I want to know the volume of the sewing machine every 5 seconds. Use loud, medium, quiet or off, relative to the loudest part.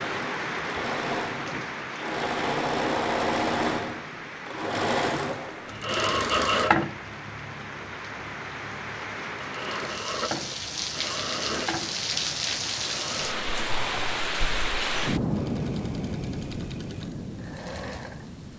loud, loud, medium, quiet.